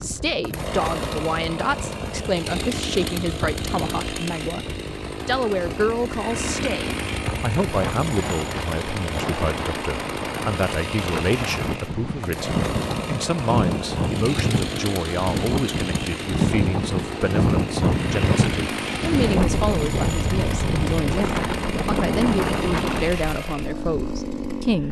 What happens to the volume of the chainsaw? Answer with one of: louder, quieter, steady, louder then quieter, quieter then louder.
steady.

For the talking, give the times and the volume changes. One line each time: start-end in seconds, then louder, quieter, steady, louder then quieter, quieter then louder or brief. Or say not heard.
0.0-24.8 steady.